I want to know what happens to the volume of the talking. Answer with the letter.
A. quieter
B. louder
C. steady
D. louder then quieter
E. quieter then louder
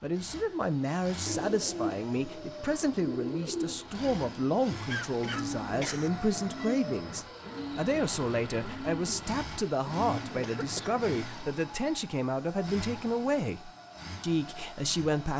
C.